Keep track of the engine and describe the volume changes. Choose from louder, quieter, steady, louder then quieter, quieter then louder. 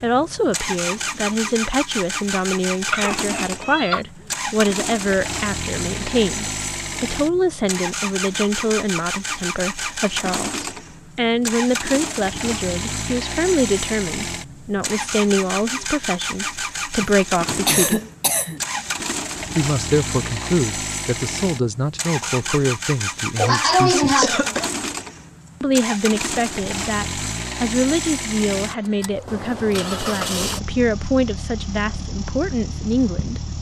steady.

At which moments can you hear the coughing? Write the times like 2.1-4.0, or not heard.
2.9-4.0, 17.0-18.6, 23.4-24.7.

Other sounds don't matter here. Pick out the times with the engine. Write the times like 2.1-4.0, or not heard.
0.0-33.5.